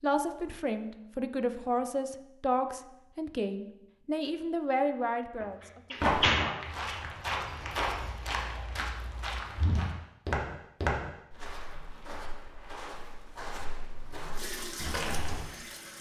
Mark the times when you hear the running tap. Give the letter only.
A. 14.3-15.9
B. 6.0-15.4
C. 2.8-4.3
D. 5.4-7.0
A.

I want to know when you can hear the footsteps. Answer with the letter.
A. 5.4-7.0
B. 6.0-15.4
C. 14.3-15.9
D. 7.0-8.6
B.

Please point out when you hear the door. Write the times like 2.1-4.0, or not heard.
5.4-7.0.